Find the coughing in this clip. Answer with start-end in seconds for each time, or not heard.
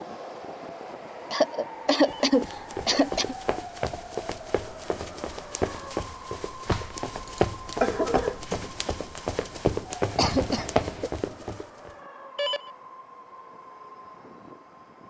1.3-3.4, 6.7-8.4, 10.2-11.1.